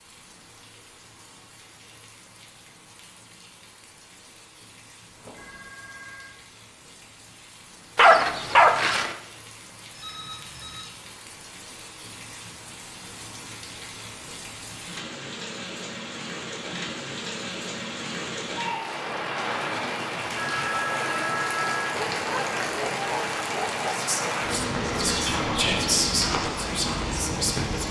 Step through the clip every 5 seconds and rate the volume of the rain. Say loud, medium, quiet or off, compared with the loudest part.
quiet, quiet, quiet, loud, loud, loud.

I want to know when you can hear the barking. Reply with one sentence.
The barking can be heard from 8.0 to 9.2 s and from 21.9 to 23.9 s.